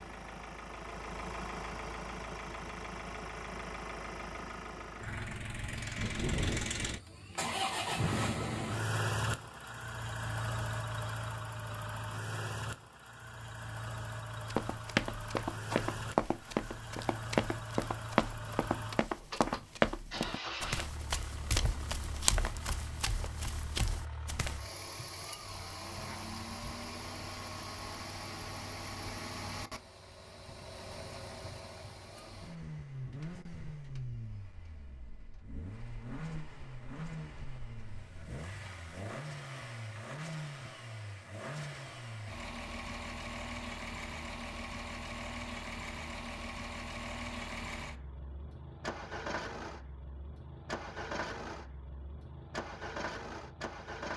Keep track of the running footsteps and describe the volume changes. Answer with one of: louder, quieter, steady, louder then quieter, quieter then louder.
quieter.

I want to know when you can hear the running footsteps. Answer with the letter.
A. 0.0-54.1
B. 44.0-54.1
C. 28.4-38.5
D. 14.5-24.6
D.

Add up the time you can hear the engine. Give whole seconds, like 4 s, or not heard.
54 s.